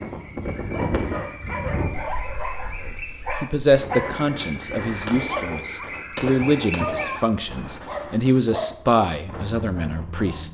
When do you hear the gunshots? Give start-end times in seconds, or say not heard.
5.0-7.0.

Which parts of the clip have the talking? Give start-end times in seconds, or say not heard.
3.4-10.4.